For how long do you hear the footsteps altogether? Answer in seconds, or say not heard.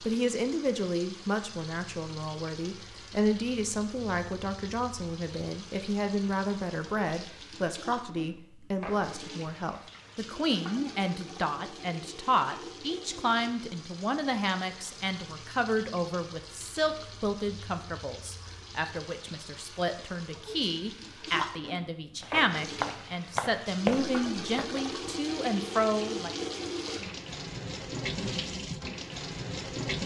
3 s.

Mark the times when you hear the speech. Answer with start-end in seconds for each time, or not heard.
0.0-26.3.